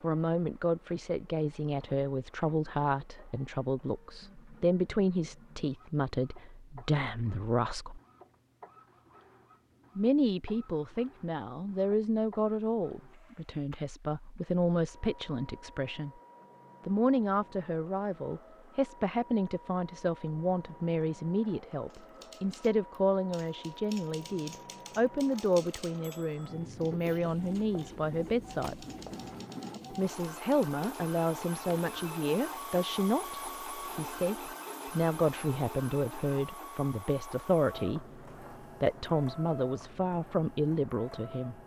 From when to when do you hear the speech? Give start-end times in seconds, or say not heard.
0.0-8.0, 9.9-16.1, 16.9-28.9, 29.9-38.0, 38.8-41.6.